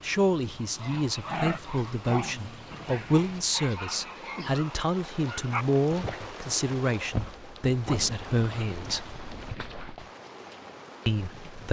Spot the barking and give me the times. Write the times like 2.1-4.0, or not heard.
0.6-10.1.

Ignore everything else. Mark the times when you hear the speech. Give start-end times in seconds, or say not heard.
0.0-9.1, 11.1-11.6.